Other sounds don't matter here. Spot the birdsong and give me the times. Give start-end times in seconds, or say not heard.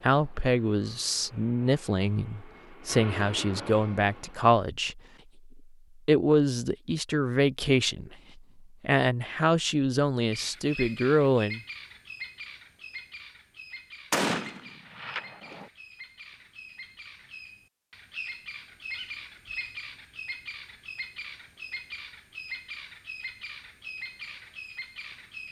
10.3-25.4.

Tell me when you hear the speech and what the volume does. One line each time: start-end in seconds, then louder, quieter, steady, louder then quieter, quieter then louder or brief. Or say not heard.
0.0-8.2 steady
8.8-11.6 brief.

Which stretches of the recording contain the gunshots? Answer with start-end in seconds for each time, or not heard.
14.1-15.7.